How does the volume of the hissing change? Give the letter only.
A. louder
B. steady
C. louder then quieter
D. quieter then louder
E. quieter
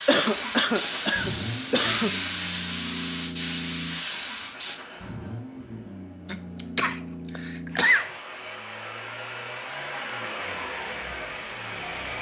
B.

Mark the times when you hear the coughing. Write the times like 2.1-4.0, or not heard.
0.1-2.2, 6.2-8.1.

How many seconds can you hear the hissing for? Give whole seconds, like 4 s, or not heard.
5 s.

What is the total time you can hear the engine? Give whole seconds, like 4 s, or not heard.
12 s.